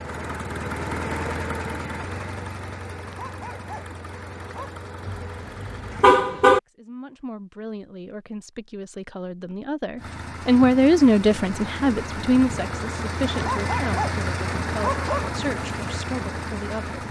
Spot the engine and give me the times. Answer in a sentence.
The engine can be heard from 0.0 to 6.2 s and from 9.9 to 17.0 s.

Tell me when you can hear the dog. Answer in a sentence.
The dog can be heard from 3.0 to 4.8 s and from 13.3 to 15.3 s.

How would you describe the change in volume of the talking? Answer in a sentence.
The volume of the talking goes up, then down.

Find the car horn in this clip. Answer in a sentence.
You can hear the car horn from 5.0 to 6.6 s.